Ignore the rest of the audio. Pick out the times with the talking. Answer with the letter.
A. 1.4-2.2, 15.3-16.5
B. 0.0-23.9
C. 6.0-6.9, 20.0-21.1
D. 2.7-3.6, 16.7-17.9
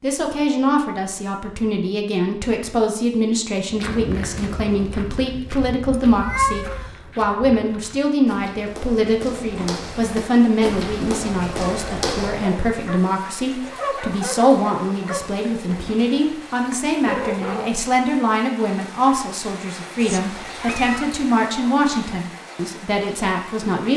B.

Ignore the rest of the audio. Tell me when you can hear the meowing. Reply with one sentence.
The meowing can be heard from 6.0 to 6.9 s and from 20.0 to 21.1 s.